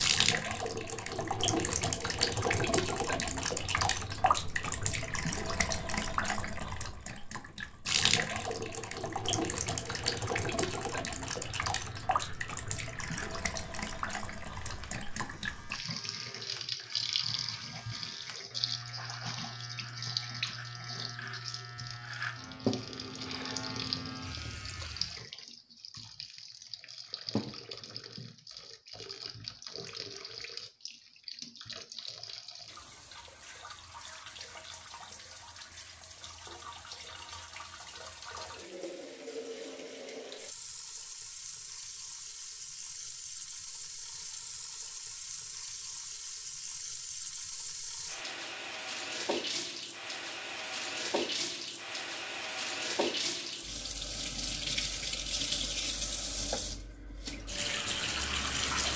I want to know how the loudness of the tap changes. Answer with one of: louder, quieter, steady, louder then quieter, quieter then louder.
quieter then louder.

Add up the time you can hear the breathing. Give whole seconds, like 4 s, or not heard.
not heard.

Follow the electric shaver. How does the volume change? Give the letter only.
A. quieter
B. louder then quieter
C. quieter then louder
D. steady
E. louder
E.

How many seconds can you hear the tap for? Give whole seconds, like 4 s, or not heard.
59 s.